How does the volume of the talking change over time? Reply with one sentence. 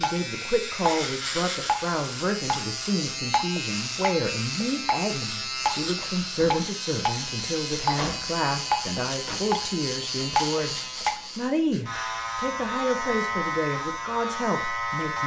The loudness of the talking stays about the same.